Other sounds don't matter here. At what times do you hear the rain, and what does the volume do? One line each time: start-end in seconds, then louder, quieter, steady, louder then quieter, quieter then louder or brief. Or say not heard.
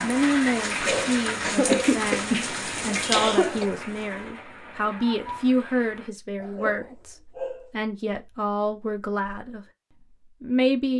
0.0-6.1 quieter.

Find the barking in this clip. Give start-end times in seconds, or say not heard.
0.8-1.9, 6.5-7.7.